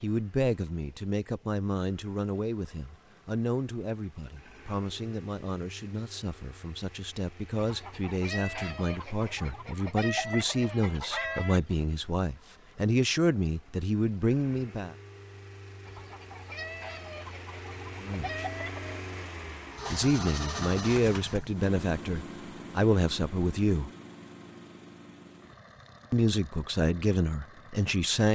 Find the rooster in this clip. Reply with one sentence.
The rooster can be heard from 7.5 to 11.8 s and from 15.8 to 19.0 s.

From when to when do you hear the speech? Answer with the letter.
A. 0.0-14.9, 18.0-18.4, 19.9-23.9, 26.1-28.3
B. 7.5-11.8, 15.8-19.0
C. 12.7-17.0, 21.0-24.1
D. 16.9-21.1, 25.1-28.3
A.